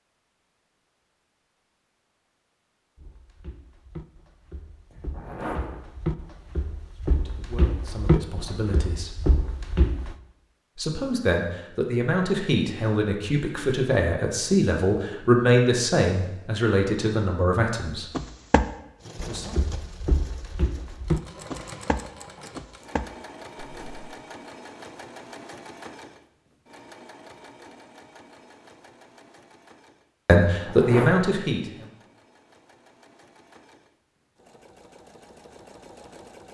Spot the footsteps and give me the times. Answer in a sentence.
You can hear the footsteps from 3.0 to 10.2 s and from 18.1 to 24.1 s.